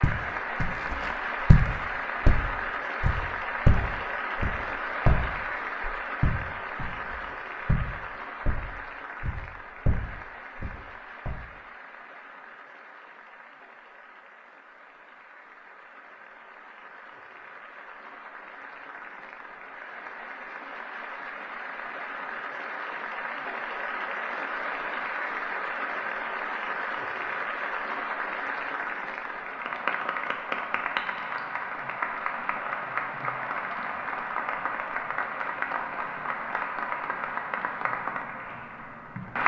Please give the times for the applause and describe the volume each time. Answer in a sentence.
The applause can be heard from 0.0 to 39.4 s, getting quieter then louder.